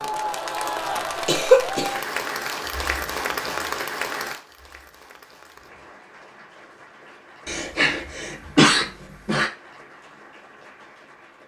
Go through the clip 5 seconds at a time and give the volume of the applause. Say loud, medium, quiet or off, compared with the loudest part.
loud, quiet, quiet.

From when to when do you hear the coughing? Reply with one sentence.
You can hear the coughing from 1.2 to 1.9 s and from 7.5 to 9.5 s.